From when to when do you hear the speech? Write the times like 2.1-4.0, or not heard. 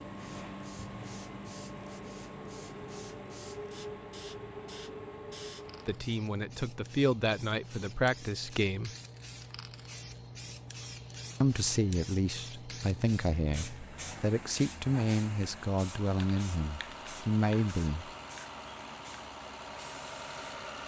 5.8-8.9, 11.4-18.1.